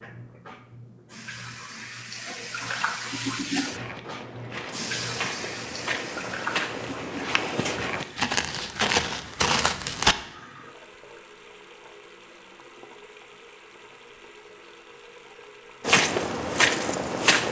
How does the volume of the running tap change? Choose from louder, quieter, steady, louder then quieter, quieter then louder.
quieter.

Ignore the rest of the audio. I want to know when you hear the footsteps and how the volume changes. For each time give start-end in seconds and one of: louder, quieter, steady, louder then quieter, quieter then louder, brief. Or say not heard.
3.6-10.2 louder
15.8-17.4 brief.